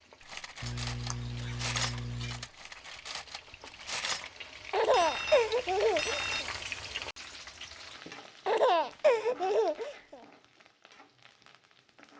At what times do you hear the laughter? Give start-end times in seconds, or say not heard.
0.6-2.5, 4.7-6.5, 8.4-10.2.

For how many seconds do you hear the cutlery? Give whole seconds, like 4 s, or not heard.
6 s.